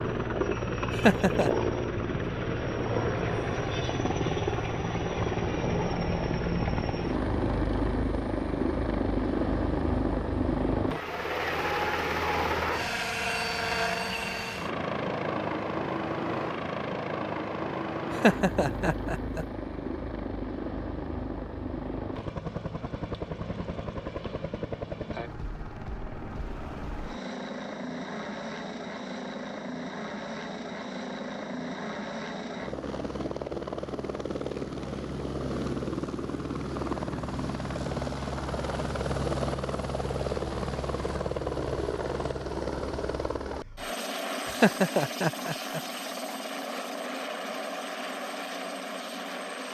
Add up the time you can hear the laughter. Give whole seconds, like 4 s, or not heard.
3 s.